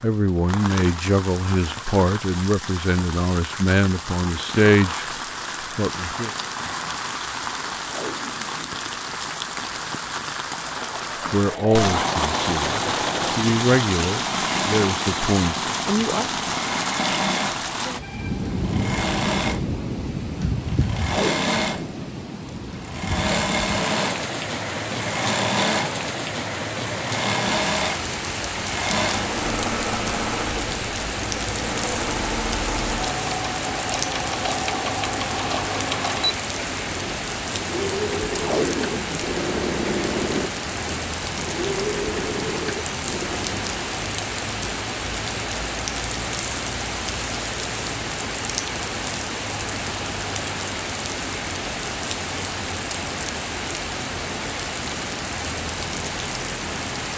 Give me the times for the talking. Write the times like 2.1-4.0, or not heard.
0.0-5.0, 5.8-6.3, 11.3-16.4.